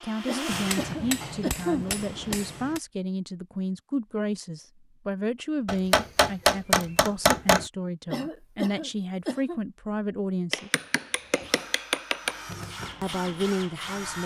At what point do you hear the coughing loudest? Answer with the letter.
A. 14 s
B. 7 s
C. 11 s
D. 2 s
D.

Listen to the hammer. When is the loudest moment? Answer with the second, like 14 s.
7 s.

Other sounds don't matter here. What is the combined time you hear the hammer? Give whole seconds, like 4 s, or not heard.
6 s.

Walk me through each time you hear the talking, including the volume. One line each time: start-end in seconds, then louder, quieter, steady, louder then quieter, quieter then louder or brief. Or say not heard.
0.0-10.7 steady
13.0-14.2 brief.